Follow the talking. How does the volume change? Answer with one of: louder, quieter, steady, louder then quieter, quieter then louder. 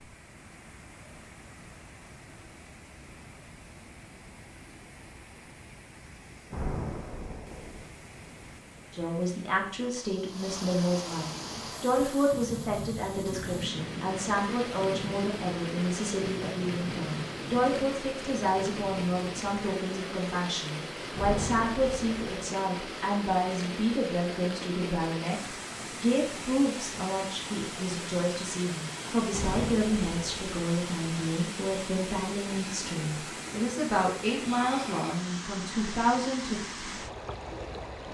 steady.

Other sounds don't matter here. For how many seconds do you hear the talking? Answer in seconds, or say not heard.
28 s.